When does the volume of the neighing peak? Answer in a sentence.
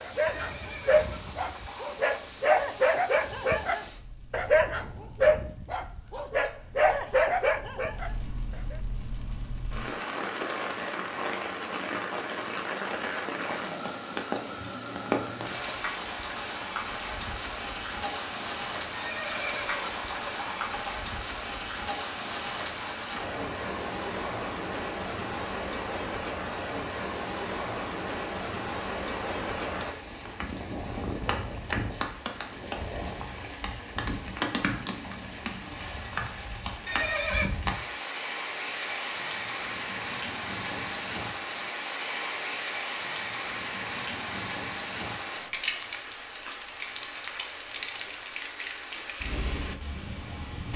The volume of the neighing peaks at 37 seconds.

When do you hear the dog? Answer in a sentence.
The dog can be heard from 0.0 to 8.8 s.